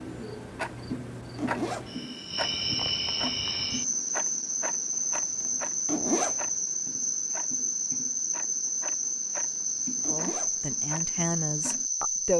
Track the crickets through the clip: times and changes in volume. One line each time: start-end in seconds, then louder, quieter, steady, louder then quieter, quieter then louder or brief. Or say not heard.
0.0-12.3 louder.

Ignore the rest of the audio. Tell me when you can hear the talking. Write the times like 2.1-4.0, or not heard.
10.1-12.3.